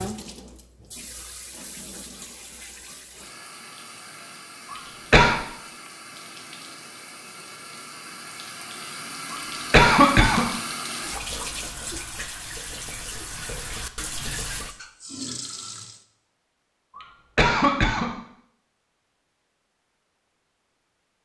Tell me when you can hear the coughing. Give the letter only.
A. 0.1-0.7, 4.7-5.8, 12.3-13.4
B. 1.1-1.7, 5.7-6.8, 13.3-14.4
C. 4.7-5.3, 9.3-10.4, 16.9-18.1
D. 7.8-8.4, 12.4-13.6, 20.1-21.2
C.